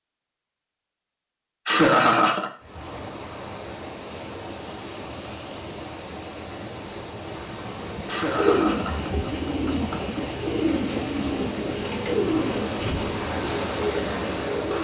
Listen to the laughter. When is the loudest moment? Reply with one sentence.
The volume of the laughter peaks at 2 seconds.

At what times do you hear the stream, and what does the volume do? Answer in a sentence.
The stream can be heard from 2.6 to 14.7 s, getting louder.